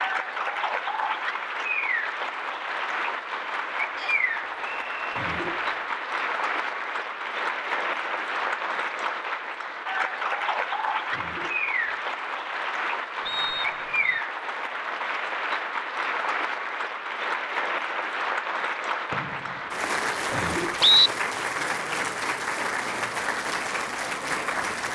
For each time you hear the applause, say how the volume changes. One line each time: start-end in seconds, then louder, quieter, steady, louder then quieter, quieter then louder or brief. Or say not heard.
0.0-24.8 steady.